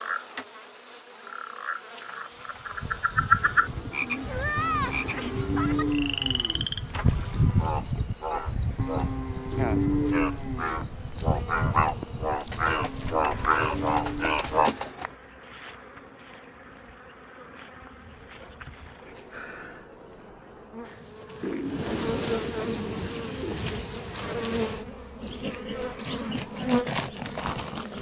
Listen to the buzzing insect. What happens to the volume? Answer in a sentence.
The loudness of the buzzing insect goes up.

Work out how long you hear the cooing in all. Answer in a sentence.
The cooing can be heard for 7 seconds in total.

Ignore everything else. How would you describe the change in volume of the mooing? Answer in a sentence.
The loudness of the mooing goes up, then down.